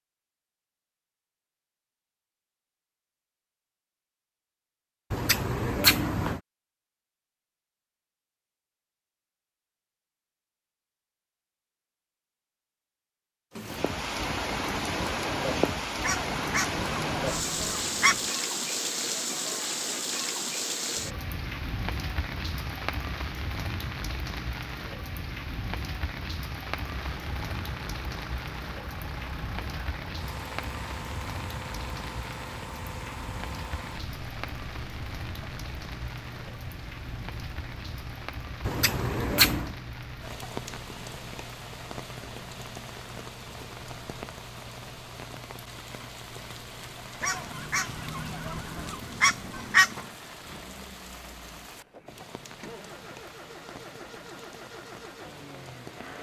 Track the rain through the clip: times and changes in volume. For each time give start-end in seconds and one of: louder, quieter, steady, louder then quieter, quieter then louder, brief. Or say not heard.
13.6-56.1 quieter.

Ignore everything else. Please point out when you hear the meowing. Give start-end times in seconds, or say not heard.
not heard.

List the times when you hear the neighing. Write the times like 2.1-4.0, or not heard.
5.1-6.4, 38.6-39.8.